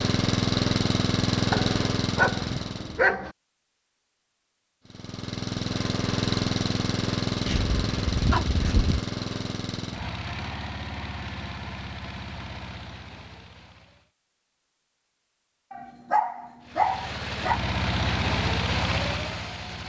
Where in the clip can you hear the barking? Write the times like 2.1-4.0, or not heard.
1.5-3.3, 7.5-9.1, 15.7-17.6.